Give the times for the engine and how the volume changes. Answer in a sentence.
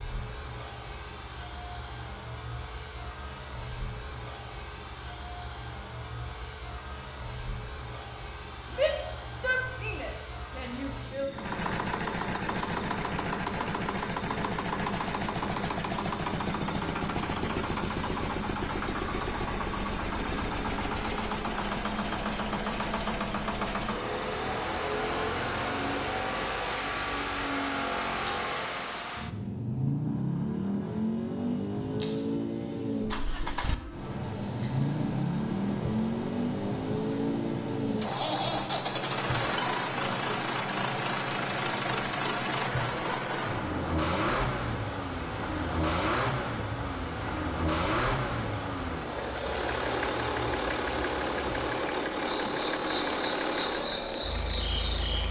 You can hear the engine from 11.3 to 55.2 s, at a steady volume.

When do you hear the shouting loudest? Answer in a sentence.
The volume of the shouting peaks at 9 seconds.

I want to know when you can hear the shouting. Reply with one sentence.
The shouting can be heard from 8.7 to 11.3 s.